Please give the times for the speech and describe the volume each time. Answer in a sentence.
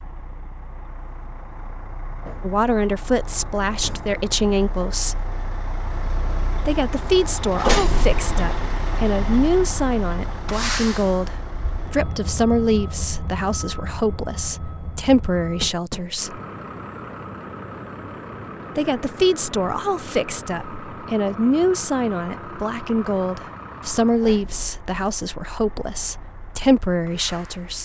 The speech can be heard briefly from 2.4 to 5.2 s; from 6.7 to 16.4 s, at a steady volume; and from 18.8 to 27.8 s, at a steady volume.